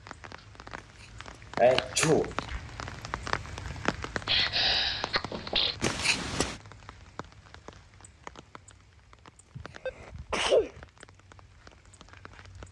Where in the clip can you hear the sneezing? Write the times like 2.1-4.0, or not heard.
1.6-2.4, 4.2-5.8, 9.6-10.8.